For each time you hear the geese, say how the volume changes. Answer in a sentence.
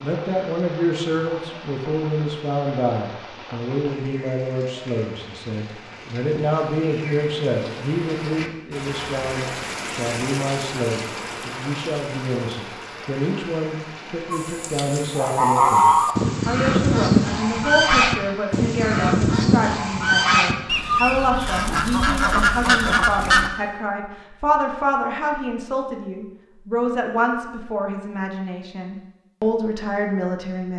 The geese can be heard from 14.3 to 23.5 s, at a steady volume.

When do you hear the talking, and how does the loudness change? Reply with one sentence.
The talking can be heard from 0.0 to 30.7 s, at a steady volume.